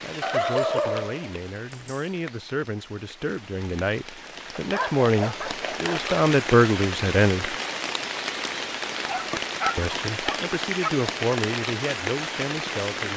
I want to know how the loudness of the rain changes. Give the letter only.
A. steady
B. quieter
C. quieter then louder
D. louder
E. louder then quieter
D.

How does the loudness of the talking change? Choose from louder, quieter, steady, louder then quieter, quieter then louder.
louder then quieter.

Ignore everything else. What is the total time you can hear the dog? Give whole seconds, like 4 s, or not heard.
5 s.